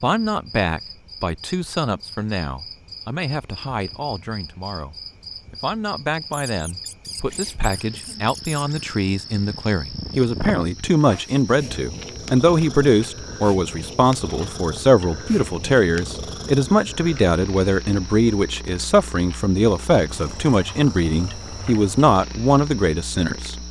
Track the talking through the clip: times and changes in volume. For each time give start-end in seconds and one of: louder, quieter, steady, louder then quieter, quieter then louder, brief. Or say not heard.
0.0-23.6 louder.